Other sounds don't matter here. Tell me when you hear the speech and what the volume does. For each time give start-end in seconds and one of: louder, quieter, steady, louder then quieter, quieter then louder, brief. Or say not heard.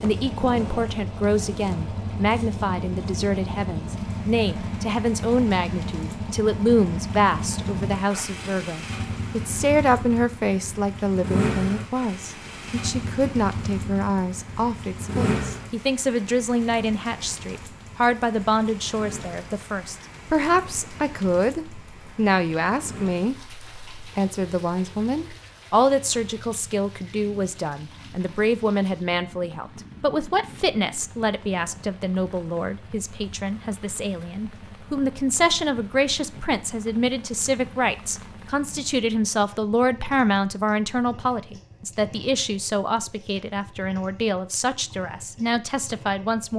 0.0-46.5 steady.